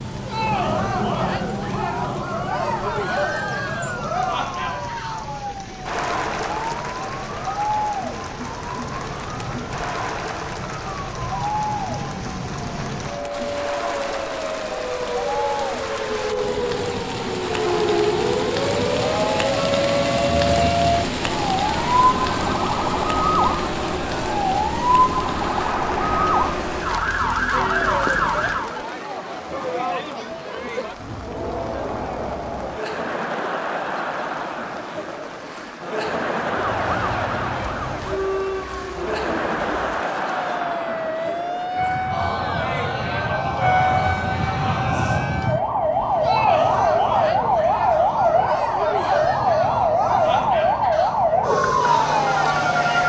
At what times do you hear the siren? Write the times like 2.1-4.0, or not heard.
0.0-28.8, 36.4-53.0.